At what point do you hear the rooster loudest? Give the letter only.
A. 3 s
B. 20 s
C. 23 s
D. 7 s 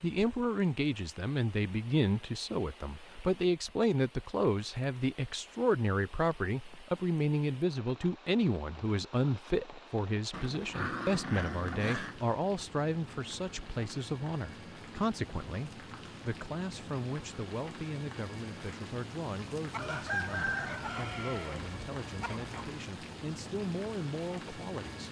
B.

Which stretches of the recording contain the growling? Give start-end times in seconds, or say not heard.
10.3-12.2.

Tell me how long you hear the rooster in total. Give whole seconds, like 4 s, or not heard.
3 s.